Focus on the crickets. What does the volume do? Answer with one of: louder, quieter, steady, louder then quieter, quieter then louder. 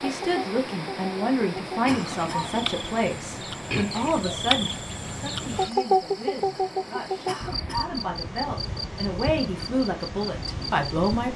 louder then quieter.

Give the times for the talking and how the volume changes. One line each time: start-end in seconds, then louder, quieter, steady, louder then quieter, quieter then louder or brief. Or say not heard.
0.0-11.3 quieter then louder.